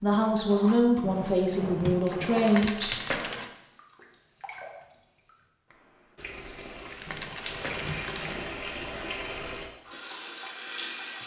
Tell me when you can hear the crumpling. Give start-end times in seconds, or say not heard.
2.0-3.5, 6.6-8.4.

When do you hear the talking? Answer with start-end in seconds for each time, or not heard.
0.0-3.1.